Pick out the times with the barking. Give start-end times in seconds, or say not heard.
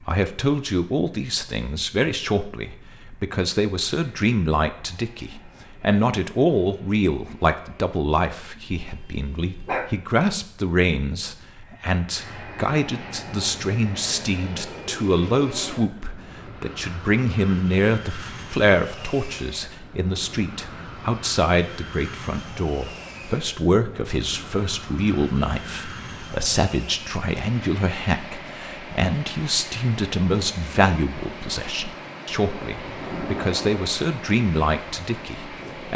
8.8-9.9.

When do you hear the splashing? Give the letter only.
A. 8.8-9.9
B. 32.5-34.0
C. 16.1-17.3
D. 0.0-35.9
B.